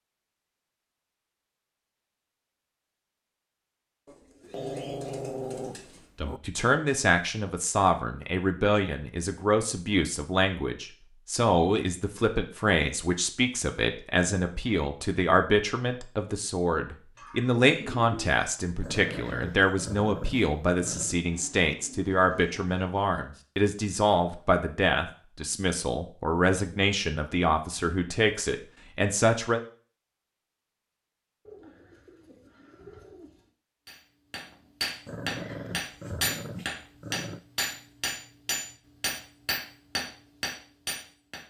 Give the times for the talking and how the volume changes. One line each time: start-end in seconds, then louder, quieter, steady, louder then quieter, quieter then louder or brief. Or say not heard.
6.2-29.6 steady.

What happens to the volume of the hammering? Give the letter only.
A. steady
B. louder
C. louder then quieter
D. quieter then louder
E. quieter
A.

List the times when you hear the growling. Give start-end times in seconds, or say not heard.
4.4-6.4, 18.8-21.2, 35.0-37.4.